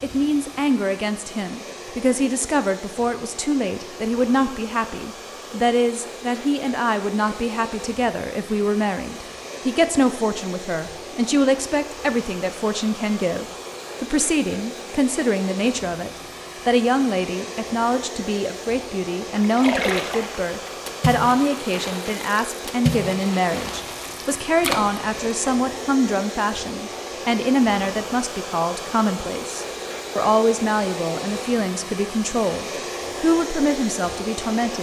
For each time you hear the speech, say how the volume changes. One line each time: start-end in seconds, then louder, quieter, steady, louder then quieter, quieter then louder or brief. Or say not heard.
0.0-34.7 steady.